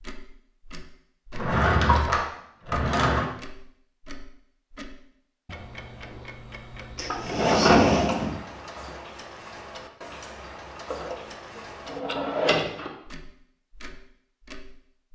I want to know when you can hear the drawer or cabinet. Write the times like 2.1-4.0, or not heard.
1.3-3.2, 7.0-8.3, 10.9-12.9.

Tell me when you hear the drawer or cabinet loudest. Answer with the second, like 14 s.
8 s.